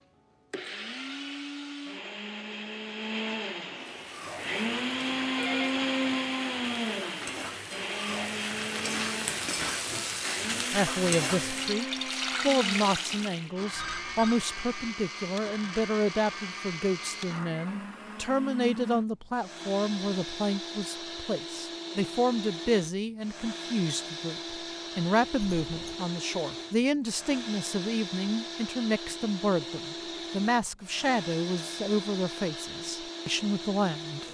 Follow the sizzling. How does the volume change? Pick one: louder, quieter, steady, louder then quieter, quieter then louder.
louder.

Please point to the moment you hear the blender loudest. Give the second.
6 s.